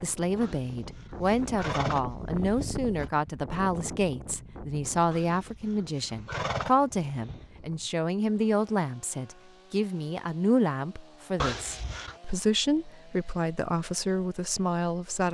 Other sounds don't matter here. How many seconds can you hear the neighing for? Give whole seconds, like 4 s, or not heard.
6 s.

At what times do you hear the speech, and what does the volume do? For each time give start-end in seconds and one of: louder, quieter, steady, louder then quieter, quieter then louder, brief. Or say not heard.
0.0-15.3 steady.